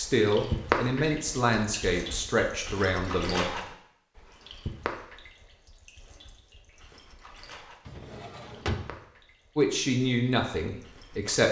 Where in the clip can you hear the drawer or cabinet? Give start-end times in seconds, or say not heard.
7.8-9.0.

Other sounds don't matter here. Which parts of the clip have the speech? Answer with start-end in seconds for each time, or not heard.
0.0-3.5, 9.6-11.4.